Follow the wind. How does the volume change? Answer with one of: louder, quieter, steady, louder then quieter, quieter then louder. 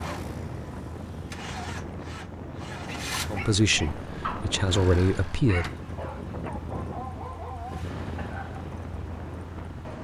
steady.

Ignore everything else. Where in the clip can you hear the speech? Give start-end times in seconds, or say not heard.
3.3-5.7.